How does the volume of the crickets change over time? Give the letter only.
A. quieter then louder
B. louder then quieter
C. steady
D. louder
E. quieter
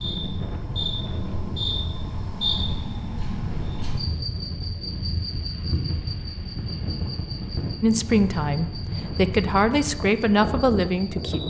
E.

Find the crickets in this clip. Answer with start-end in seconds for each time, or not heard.
0.0-11.4.